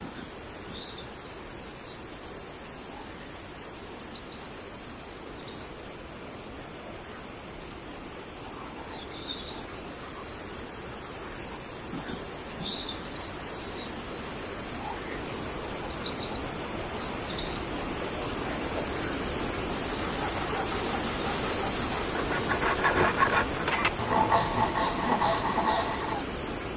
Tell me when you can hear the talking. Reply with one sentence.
You can't hear the talking here.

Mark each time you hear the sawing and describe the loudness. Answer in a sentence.
You can hear the sawing from 20.1 to 26.2 s, getting louder.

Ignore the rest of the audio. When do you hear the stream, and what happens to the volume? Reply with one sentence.
You can hear the stream from 0.0 to 26.7 s, getting louder.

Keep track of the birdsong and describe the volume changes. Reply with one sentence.
The volume of the birdsong goes up.